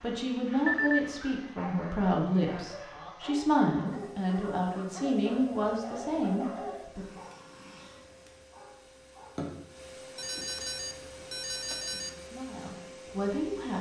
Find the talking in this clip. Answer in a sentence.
The talking can be heard from 0.0 to 7.0 s and from 11.9 to 13.7 s.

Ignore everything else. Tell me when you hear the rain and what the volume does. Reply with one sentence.
You can't hear the rain here.